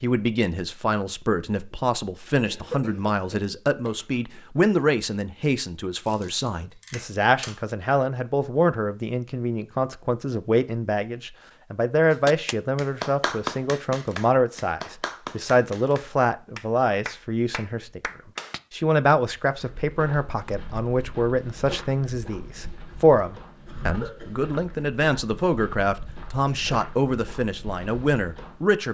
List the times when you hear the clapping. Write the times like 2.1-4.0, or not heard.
12.1-18.6.